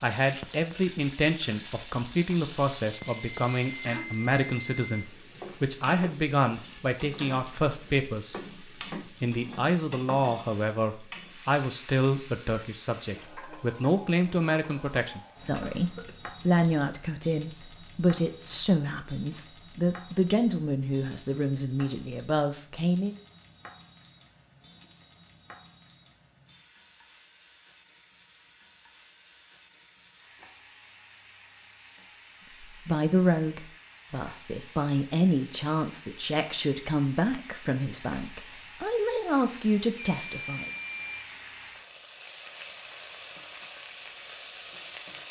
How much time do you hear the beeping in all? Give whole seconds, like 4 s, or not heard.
3 s.